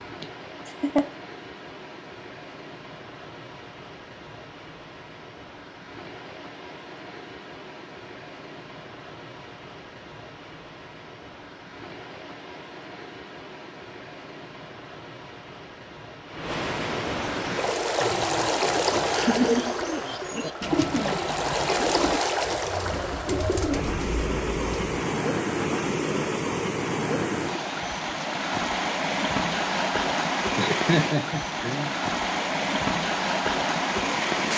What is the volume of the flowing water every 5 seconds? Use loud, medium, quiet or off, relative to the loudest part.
quiet, quiet, quiet, loud, loud, loud, loud.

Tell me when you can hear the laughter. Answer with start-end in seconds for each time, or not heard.
0.2-1.1, 19.1-20.3, 30.6-32.0.